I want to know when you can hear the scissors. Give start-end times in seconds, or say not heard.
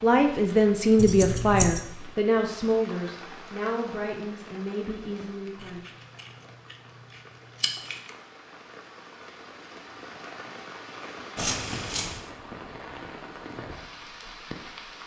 0.9-1.8, 5.8-6.8, 7.6-8.1, 11.3-12.2.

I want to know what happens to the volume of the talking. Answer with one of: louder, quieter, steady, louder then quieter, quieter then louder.
quieter.